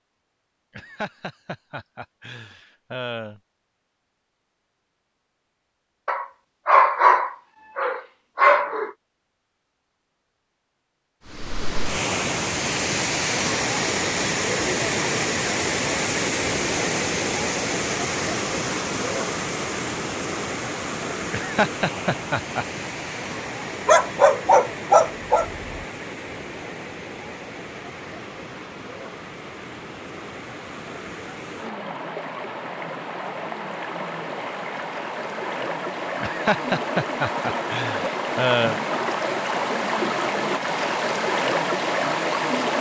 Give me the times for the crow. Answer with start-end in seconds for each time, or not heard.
not heard.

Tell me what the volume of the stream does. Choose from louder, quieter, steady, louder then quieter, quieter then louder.
quieter then louder.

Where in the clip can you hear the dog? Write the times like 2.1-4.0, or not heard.
6.0-8.9, 23.9-25.8.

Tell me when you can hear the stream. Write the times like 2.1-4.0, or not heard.
11.2-42.7.